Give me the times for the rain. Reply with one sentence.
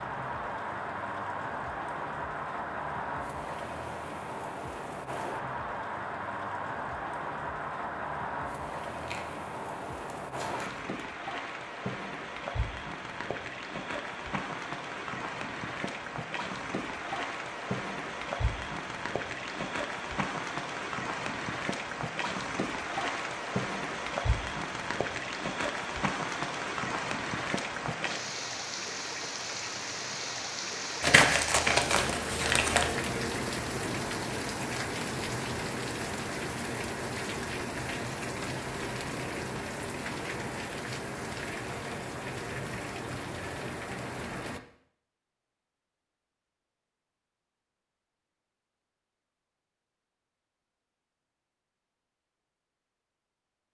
You can hear the rain from 0.0 to 44.6 s.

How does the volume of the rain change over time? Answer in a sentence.
The loudness of the rain stays about the same.